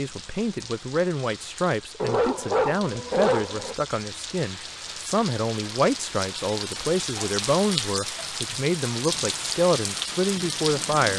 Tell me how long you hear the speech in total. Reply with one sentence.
The speech can be heard for 11 seconds in total.